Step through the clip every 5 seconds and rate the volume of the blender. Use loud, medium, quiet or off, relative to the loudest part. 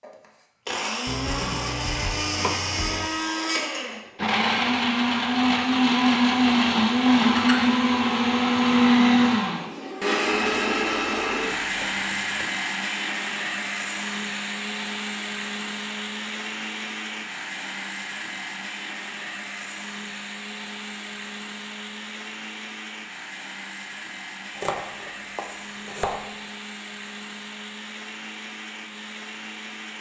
medium, loud, medium, quiet, quiet, quiet.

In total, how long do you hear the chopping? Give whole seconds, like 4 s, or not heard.
6 s.